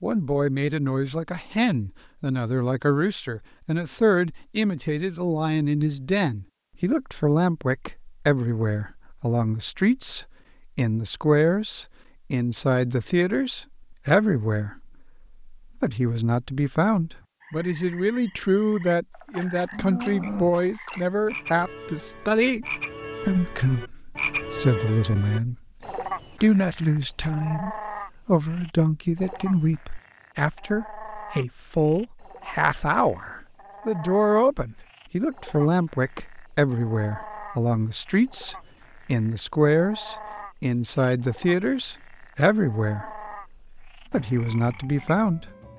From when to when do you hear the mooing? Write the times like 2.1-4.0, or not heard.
19.7-20.6.